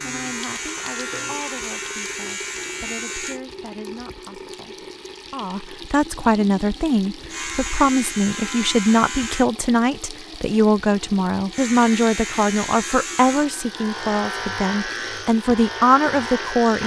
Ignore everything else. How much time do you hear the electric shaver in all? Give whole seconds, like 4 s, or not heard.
11 s.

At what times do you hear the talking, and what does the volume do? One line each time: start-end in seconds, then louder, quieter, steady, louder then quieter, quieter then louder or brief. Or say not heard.
0.0-16.8 louder.